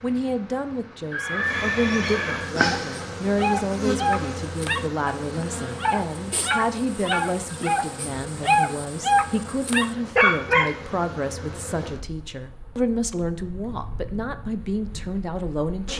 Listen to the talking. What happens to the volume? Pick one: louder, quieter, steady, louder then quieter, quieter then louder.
steady.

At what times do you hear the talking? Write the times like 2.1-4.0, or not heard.
0.0-15.9.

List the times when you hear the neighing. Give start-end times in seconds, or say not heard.
1.1-2.5.